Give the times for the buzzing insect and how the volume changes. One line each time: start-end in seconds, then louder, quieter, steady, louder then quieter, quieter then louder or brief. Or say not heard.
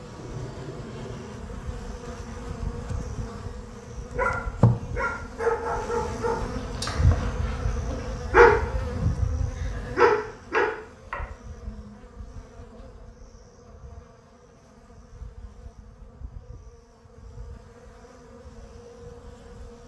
0.0-19.8 louder then quieter.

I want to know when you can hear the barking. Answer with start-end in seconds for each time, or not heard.
4.2-10.7.